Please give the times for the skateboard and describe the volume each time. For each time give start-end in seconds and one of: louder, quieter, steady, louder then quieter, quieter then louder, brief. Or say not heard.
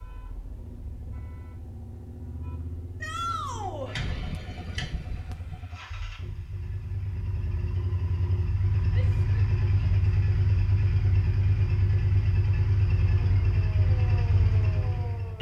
not heard.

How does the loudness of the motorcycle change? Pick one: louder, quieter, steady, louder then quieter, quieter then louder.
louder.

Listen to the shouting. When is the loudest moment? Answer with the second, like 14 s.
3 s.